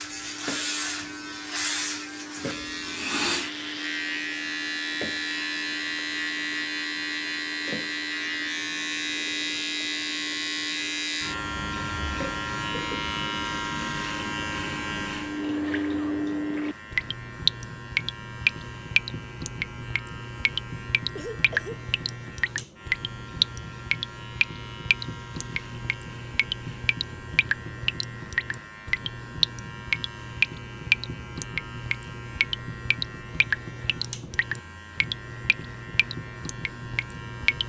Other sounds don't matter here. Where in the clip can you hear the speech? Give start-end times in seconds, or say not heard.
not heard.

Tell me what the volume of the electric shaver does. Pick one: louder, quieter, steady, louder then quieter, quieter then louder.
quieter.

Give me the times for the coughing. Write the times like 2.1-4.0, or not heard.
21.1-21.8.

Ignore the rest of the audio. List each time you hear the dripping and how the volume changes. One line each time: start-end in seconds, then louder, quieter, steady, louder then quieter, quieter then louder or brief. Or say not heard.
0.0-37.6 louder.